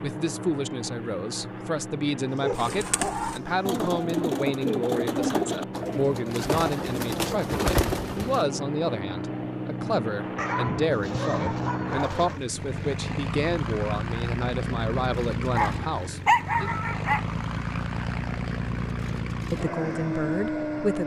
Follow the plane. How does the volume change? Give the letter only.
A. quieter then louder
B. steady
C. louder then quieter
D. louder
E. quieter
D.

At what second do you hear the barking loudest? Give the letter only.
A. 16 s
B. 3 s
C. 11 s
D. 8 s
A.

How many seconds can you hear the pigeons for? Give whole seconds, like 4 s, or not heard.
6 s.